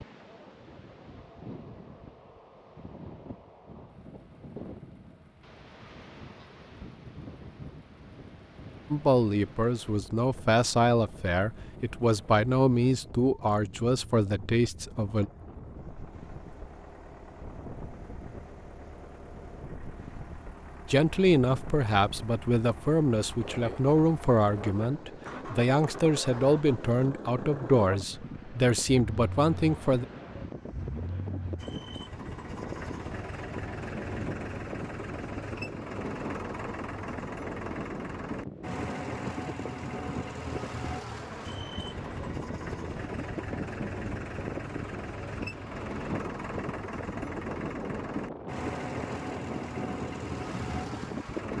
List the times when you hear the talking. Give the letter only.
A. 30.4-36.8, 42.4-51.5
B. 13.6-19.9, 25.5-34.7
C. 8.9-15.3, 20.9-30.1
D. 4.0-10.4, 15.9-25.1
C.